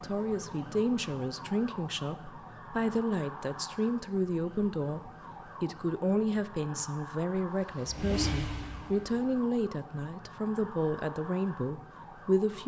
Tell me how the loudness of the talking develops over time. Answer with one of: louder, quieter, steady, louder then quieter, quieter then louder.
steady.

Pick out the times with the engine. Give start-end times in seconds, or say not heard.
7.5-9.2.